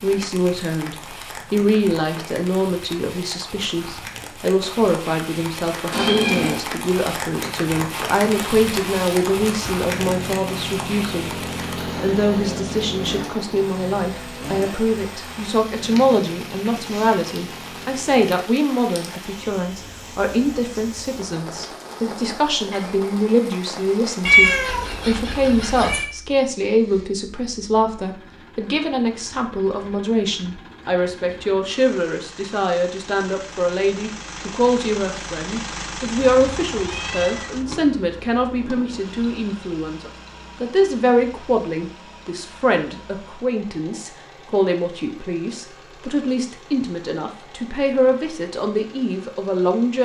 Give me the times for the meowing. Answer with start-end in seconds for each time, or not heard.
5.9-6.7, 24.2-26.1, 36.1-37.5.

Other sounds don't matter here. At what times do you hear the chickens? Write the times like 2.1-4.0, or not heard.
not heard.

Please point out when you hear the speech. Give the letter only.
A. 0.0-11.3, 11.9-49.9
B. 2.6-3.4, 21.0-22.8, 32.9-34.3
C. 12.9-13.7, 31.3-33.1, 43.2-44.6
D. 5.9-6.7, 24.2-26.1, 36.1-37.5
A.